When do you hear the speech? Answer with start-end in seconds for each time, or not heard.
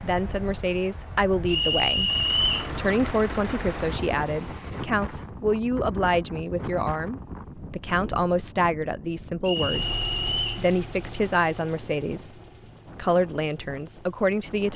0.0-2.1, 2.8-12.3, 12.9-14.7.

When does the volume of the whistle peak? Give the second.
2 s.